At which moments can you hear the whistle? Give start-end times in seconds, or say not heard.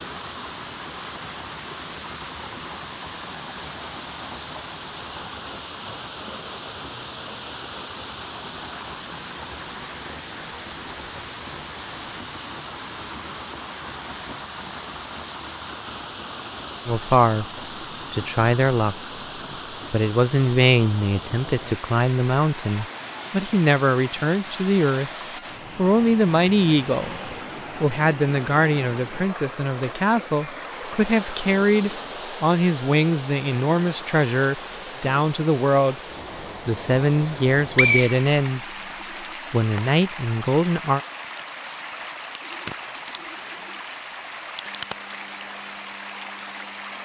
37.2-38.9.